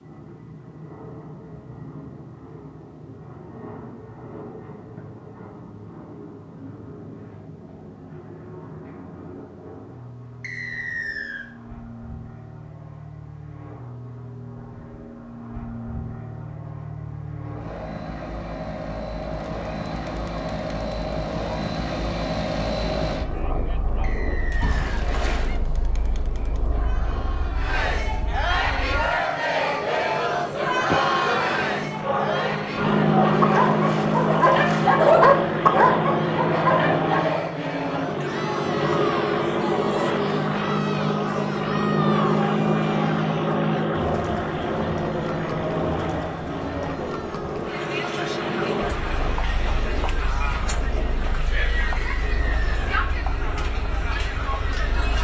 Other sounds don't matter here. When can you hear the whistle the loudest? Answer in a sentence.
The volume of the whistle peaks at 11 seconds.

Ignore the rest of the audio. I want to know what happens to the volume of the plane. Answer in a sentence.
The loudness of the plane goes up, then down.